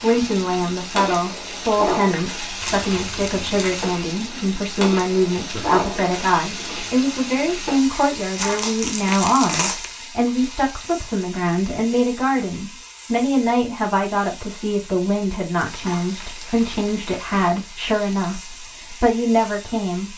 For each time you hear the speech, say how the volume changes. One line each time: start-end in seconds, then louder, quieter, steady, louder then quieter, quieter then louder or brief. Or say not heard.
0.0-20.1 steady.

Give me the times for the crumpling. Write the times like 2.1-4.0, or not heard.
2.6-3.9, 8.3-9.9, 16.1-17.5.